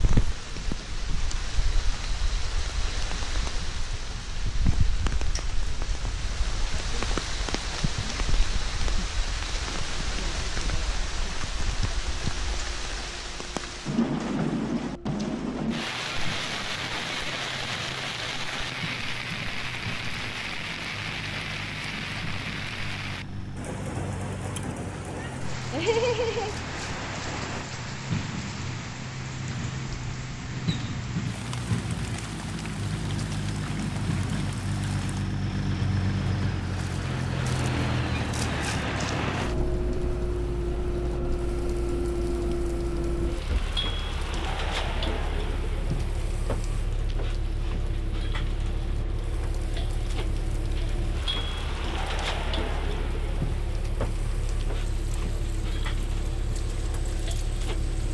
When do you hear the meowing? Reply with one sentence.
You can hear the meowing from 25.1 to 26.6 s.